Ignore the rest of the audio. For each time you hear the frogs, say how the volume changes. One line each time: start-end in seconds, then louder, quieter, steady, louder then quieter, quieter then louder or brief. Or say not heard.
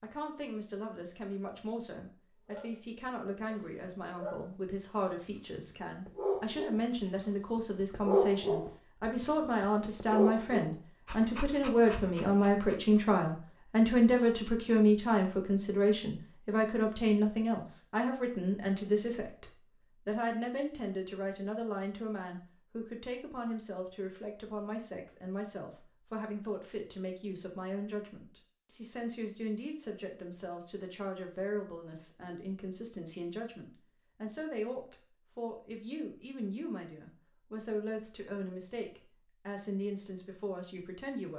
not heard.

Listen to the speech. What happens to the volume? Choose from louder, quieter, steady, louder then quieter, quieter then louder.
louder then quieter.